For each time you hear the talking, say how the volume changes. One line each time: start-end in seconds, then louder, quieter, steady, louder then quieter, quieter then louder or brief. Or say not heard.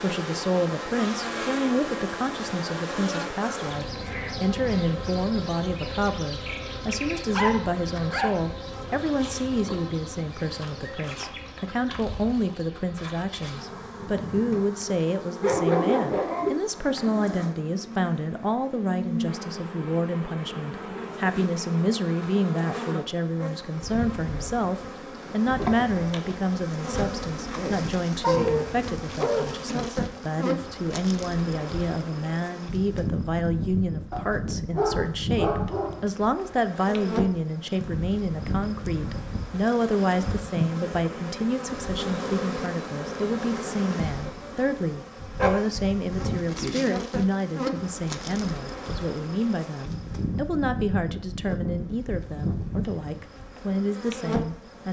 0.0-54.8 steady.